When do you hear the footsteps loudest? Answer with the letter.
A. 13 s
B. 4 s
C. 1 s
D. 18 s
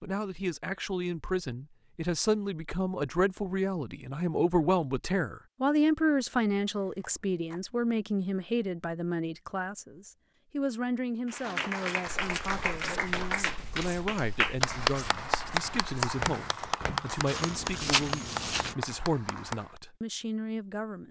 D.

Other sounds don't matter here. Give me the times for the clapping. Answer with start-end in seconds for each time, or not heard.
11.2-19.8.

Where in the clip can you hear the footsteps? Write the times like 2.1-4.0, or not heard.
12.2-18.8.